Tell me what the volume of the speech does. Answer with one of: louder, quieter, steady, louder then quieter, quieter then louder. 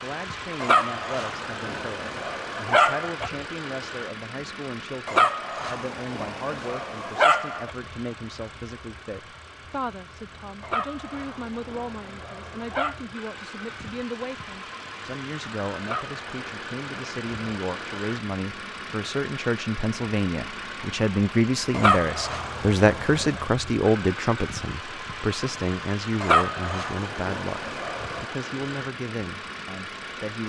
louder then quieter.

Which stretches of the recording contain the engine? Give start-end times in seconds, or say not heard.
0.0-30.4.